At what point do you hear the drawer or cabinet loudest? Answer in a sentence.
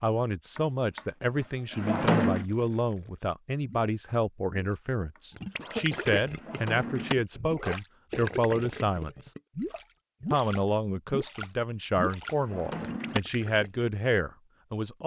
The loudest moment of the drawer or cabinet is at 2 seconds.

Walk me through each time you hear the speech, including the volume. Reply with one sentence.
You can hear the speech from 0.0 to 9.3 s, at a steady volume; and from 10.3 to 15.0 s, at a steady volume.